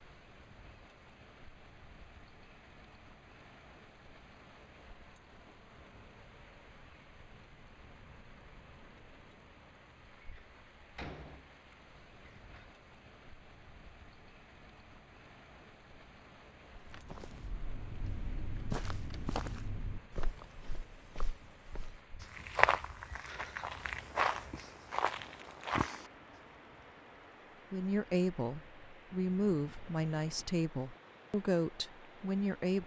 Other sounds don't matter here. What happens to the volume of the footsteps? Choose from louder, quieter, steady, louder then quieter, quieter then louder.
quieter then louder.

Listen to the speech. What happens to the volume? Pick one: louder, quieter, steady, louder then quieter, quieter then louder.
steady.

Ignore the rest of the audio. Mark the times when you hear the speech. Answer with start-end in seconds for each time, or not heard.
27.7-32.8.